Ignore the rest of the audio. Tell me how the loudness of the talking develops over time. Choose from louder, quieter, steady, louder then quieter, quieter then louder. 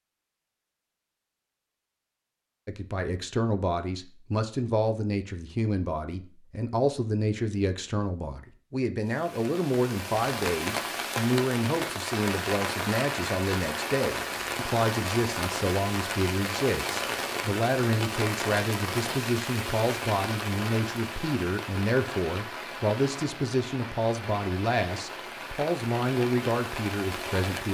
steady.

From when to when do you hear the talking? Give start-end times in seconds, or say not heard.
2.6-27.6.